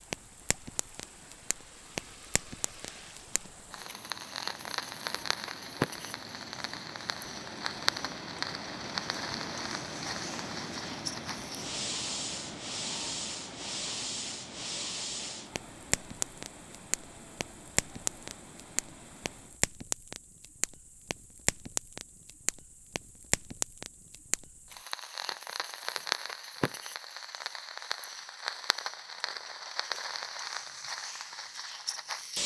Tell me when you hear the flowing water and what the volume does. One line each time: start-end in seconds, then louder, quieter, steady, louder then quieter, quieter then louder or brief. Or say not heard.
0.0-19.6 louder then quieter.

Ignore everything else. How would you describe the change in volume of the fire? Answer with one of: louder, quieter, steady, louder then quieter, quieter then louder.
steady.